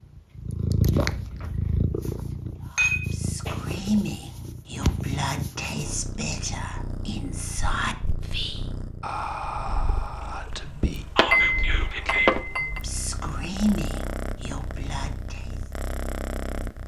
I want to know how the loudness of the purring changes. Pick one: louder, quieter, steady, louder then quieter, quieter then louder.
quieter then louder.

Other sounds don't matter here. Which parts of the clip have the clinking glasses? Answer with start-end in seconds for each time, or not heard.
2.8-3.8, 11.2-12.8.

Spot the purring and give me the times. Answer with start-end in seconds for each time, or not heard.
0.1-16.8.